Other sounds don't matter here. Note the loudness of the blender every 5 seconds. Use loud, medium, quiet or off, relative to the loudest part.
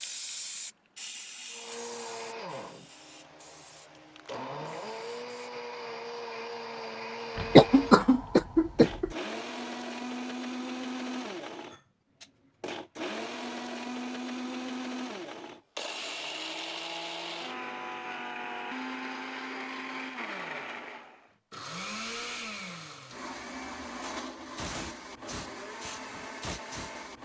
medium, loud, loud, loud, loud, medium.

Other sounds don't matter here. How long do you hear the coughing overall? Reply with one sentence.
You can hear the coughing for 2 seconds altogether.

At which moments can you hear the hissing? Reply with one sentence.
The hissing can be heard from 0.0 to 5.5 s and from 24.0 to 26.9 s.